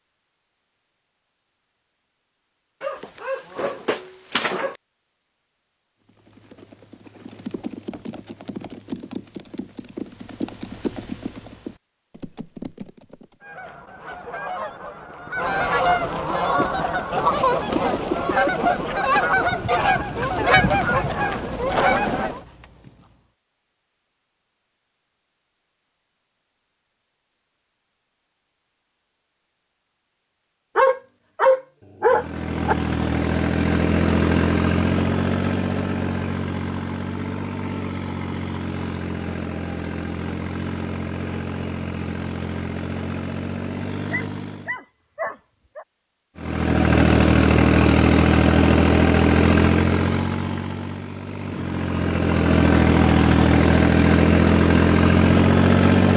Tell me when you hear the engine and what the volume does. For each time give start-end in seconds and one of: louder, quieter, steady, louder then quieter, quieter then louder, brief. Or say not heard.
32.0-44.8 quieter
46.4-56.1 quieter then louder.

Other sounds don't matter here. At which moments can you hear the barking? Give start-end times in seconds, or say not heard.
2.8-4.8, 30.8-32.8, 44.1-45.9.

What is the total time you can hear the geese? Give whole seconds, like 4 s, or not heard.
9 s.